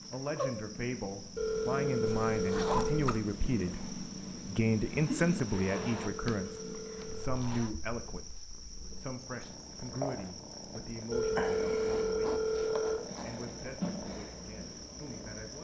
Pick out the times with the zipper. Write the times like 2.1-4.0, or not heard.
2.0-3.2, 5.4-7.7, 11.8-13.3.